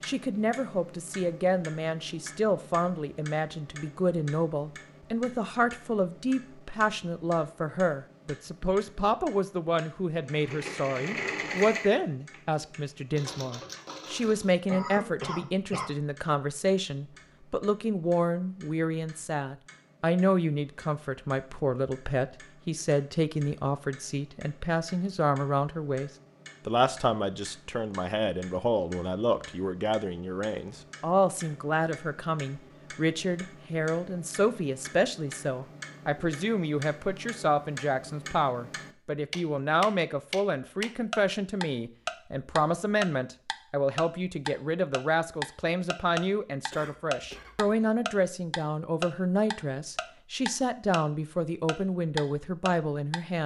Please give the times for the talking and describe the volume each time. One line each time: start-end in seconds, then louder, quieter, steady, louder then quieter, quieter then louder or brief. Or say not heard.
0.0-53.4 steady.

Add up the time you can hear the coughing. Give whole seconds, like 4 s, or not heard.
2 s.